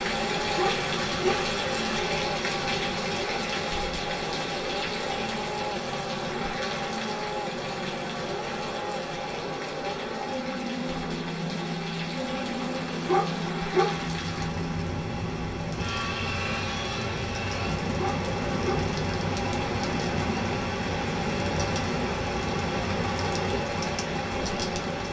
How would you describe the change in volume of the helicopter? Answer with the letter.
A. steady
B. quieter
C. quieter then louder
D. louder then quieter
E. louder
A.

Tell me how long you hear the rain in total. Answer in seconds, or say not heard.
25 s.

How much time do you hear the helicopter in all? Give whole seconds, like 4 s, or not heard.
25 s.